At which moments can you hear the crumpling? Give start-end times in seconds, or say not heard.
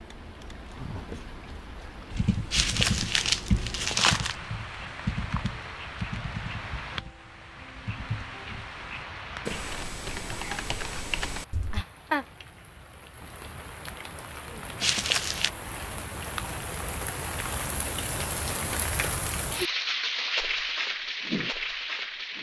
2.5-4.3, 14.8-15.5.